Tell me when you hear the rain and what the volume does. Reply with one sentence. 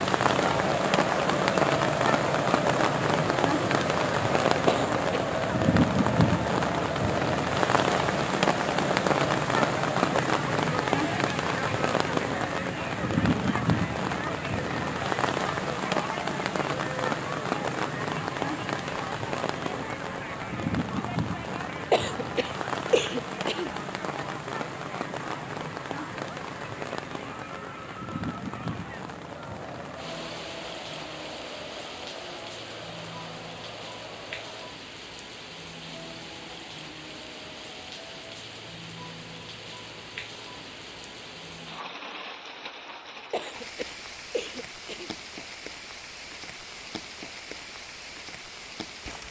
The rain can be heard from 0.0 to 49.2 s, getting quieter.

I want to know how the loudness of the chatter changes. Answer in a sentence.
The volume of the chatter goes down.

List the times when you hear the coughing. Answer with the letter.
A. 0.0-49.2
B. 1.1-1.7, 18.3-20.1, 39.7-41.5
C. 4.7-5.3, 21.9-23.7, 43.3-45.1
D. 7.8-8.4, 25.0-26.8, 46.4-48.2
C.